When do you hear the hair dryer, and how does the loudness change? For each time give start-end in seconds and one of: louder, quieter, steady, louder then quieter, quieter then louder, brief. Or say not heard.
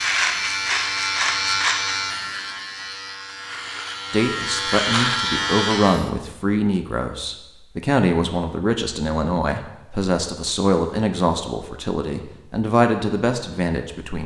not heard.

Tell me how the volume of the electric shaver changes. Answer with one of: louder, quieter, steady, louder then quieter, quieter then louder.
quieter then louder.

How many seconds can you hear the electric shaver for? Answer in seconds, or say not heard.
6 s.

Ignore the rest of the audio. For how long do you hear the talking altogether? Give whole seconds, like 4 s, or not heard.
10 s.